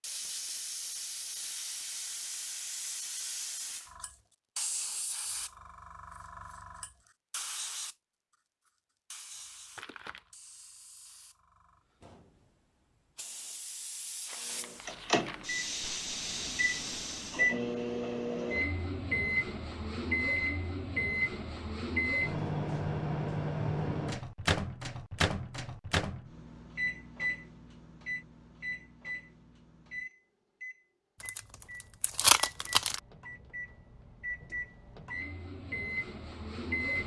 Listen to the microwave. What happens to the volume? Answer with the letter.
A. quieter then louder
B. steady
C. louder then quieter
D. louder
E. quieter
E.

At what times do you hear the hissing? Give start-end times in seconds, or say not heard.
0.0-17.6.